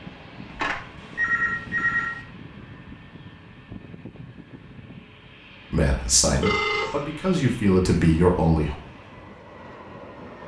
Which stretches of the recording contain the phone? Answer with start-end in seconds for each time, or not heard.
0.5-2.1, 6.4-7.0.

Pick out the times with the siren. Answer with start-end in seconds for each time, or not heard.
not heard.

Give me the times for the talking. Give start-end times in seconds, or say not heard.
5.7-8.7.